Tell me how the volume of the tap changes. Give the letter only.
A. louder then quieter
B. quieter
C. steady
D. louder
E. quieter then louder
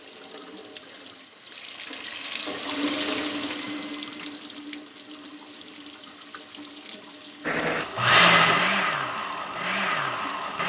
A.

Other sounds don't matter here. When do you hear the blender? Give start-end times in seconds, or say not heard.
7.4-10.6.